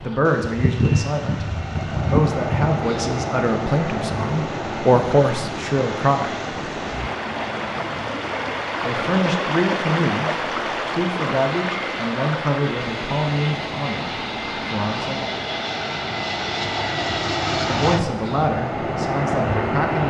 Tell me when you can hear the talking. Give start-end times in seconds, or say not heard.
0.0-1.4, 2.0-6.3, 8.8-15.2, 17.6-20.0.